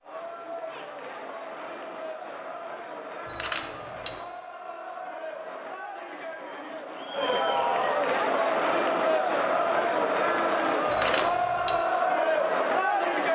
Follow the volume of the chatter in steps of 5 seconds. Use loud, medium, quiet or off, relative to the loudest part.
quiet, loud, loud.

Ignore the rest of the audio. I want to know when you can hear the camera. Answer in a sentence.
The camera can be heard from 3.2 to 4.2 s and from 10.8 to 11.8 s.